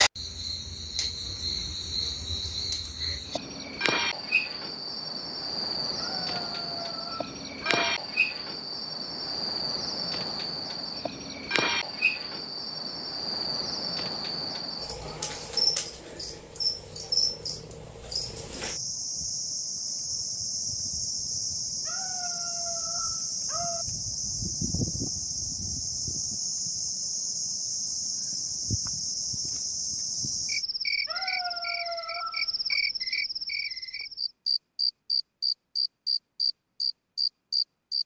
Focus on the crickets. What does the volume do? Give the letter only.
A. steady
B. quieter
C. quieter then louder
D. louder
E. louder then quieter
A.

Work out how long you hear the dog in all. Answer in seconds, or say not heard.
6 s.